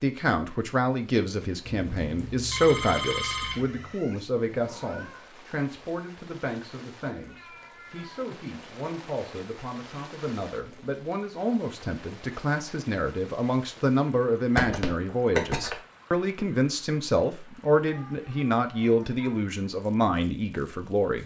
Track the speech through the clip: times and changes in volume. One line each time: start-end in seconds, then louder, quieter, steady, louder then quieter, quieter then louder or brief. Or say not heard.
0.0-21.2 quieter then louder.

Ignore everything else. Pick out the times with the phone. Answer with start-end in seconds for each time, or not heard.
1.6-3.9, 14.6-15.8.